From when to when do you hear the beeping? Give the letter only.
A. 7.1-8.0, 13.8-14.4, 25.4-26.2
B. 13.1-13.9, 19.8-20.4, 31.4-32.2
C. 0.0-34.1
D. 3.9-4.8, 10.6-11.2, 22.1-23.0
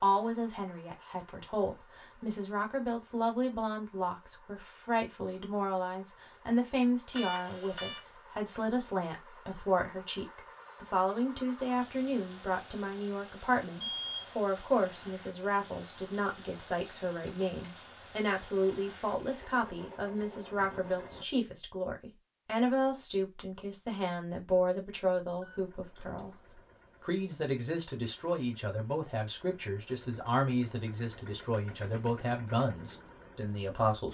A.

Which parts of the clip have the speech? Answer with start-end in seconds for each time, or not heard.
0.0-34.1.